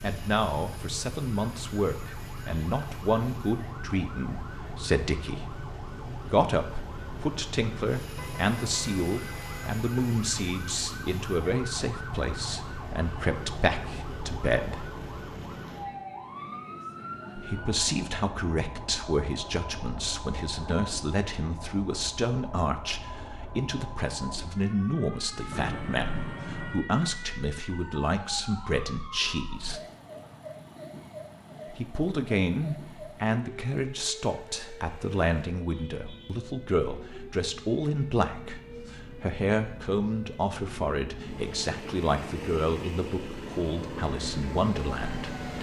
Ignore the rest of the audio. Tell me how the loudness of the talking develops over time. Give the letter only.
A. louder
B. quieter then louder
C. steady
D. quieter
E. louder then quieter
C.